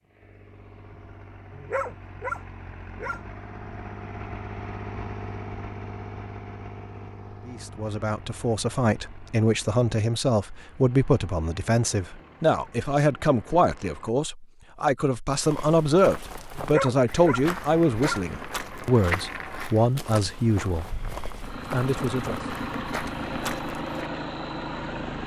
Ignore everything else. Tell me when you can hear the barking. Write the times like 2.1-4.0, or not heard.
1.5-3.2, 16.6-18.2.